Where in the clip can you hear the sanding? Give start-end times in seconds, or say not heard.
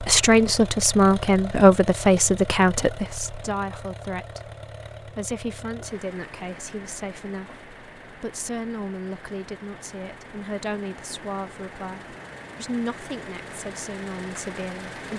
not heard.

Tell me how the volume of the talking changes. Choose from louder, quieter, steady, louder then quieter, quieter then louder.
quieter.